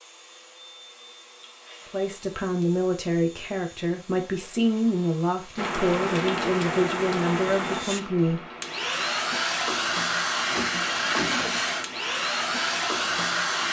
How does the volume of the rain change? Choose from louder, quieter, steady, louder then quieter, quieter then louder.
quieter.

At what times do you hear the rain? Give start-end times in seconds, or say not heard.
5.5-13.6.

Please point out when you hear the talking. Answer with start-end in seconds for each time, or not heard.
1.9-8.5.